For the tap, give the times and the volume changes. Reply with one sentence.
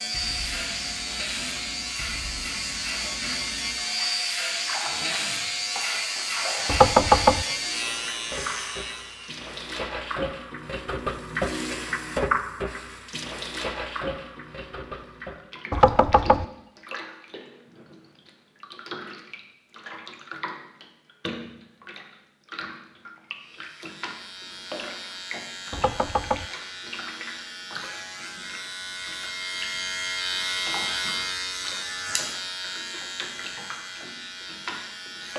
The tap can be heard from 0.0 to 35.3 s, getting louder then quieter.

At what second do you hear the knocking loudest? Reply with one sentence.
The volume of the knocking peaks at 7 seconds.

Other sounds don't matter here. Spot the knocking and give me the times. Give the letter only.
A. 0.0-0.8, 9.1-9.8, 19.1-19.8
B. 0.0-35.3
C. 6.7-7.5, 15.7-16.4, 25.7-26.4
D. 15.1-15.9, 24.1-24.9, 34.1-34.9
C.